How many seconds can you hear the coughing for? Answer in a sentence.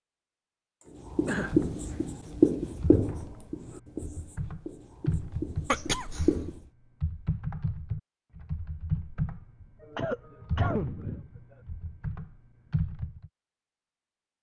The coughing can be heard for 3 seconds in total.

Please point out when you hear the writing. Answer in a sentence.
The writing can be heard from 1.1 to 6.6 s.